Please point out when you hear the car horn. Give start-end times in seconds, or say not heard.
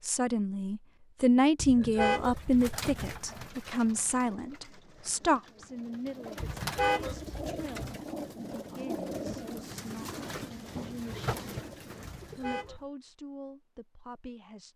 1.6-3.1, 6.3-8.0, 12.0-12.8.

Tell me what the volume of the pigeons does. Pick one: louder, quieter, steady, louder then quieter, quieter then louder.
quieter then louder.